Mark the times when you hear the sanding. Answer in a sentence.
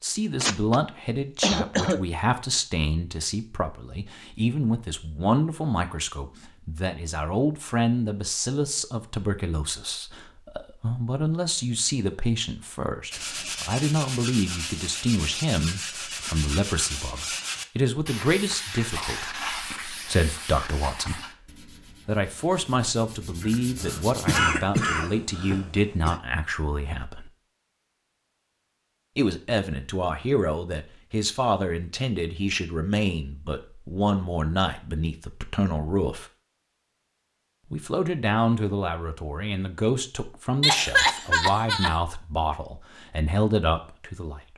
You can hear the sanding from 13.1 to 24.5 s.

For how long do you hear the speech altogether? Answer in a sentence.
The speech can be heard for 41 seconds in total.